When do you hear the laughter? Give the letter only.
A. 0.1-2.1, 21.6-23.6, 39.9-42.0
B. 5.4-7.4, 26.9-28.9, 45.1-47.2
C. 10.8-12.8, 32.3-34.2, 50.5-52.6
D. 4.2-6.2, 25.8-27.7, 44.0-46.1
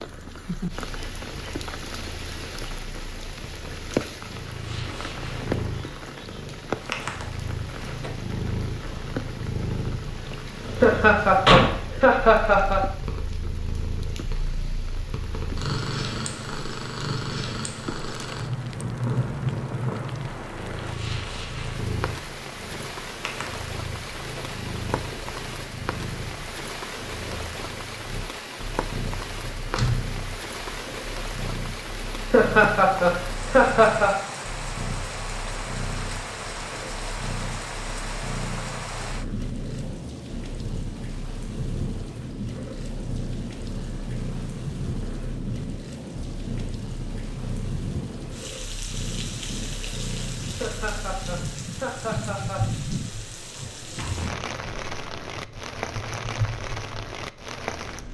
C.